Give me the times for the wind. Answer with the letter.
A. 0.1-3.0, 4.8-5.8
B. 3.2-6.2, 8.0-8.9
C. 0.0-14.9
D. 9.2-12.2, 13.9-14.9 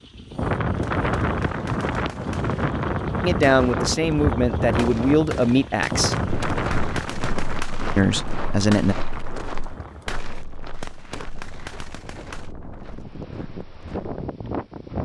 C.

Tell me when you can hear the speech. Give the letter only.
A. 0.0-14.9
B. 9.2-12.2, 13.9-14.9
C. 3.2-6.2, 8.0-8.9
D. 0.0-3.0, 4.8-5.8
C.